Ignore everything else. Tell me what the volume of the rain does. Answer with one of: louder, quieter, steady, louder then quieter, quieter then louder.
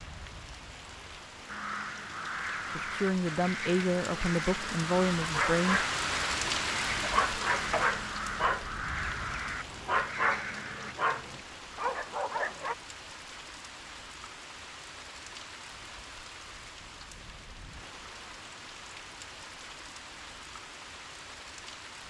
louder then quieter.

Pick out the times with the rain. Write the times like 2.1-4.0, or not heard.
0.0-22.0.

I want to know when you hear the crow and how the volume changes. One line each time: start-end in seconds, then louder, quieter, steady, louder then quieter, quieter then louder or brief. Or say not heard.
1.4-10.9 steady.